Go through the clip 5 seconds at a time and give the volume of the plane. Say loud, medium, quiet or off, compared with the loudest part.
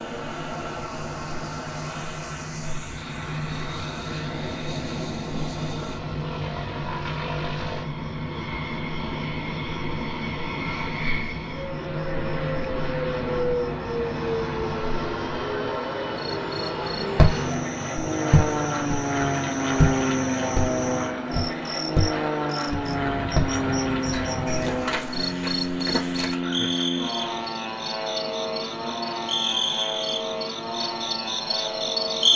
medium, medium, loud, loud, loud, loud, medium.